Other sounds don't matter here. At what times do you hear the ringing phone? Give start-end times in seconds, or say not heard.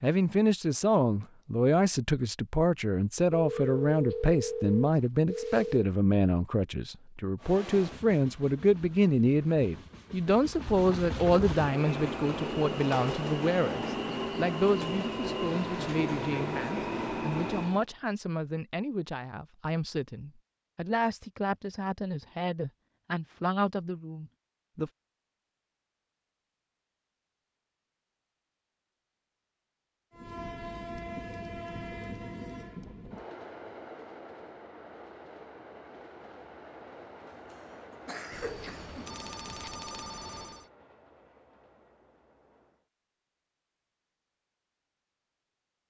3.3-5.9, 38.3-40.6.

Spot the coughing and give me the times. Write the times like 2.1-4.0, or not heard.
37.5-39.2.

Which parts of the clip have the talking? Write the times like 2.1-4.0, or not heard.
0.0-24.9.